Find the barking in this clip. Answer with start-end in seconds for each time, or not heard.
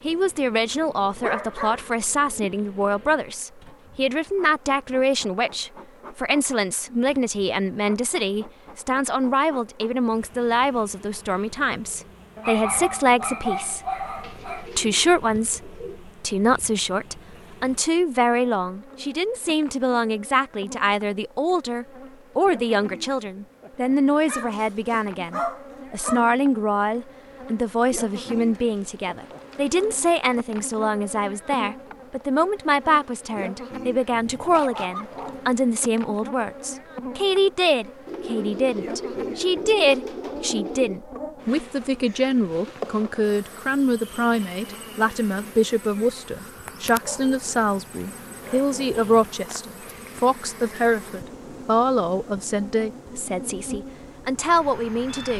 1.0-2.5, 12.3-14.7, 24.2-26.2, 34.1-35.5, 46.8-49.4.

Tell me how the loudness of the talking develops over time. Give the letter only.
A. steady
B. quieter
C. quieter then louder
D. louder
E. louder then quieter
A.